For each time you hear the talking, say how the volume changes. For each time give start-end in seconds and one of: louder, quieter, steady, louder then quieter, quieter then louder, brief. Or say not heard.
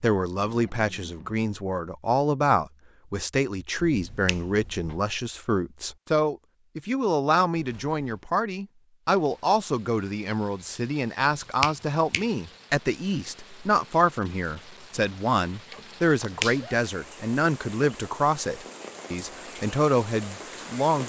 0.0-21.0 steady.